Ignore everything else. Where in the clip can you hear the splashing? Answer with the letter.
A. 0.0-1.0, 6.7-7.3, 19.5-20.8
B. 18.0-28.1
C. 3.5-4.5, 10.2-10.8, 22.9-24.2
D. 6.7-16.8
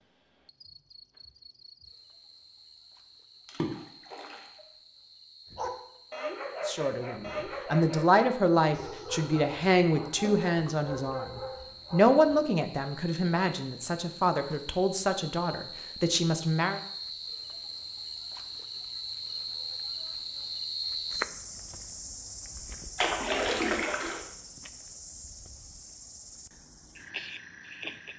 C.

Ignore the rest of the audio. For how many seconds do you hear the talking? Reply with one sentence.
The talking can be heard for 10 seconds in total.